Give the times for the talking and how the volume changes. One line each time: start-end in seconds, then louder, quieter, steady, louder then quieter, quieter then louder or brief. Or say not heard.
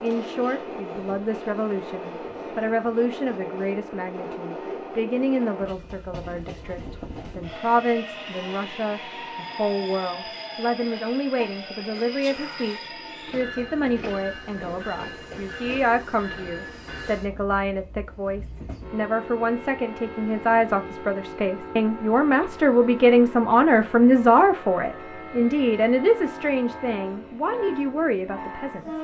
0.0-29.0 louder.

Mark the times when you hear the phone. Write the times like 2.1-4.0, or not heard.
not heard.